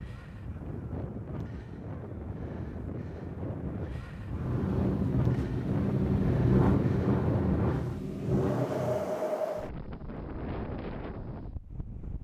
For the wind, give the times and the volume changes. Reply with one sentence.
You can hear the wind from 0.0 to 12.1 s, getting louder then quieter.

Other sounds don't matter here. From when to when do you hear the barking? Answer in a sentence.
The barking can't be heard in this clip.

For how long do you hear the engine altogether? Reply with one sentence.
You can hear the engine for 5 seconds altogether.